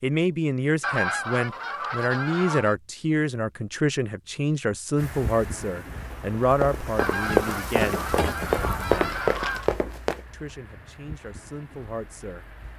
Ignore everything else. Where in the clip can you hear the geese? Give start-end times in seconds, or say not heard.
0.8-2.8, 7.0-9.7.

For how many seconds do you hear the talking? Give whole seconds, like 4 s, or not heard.
11 s.